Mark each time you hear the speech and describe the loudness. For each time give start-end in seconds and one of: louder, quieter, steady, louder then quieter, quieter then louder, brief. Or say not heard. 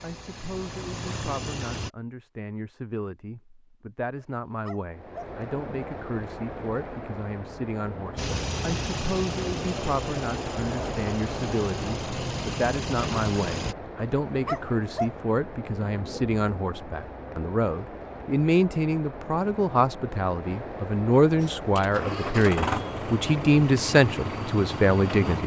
0.0-25.4 louder.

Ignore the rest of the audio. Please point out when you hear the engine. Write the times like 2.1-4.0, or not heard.
0.0-1.9, 8.2-13.8, 21.4-25.4.